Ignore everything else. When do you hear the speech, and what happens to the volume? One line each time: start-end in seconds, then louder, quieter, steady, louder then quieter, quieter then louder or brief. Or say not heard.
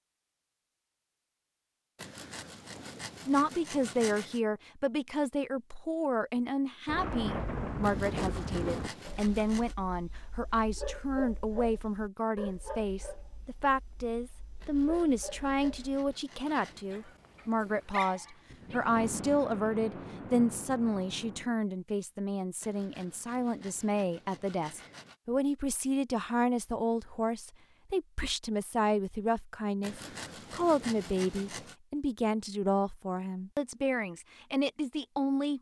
3.2-35.5 steady.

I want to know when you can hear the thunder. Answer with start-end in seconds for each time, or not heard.
6.8-8.9, 18.4-21.5.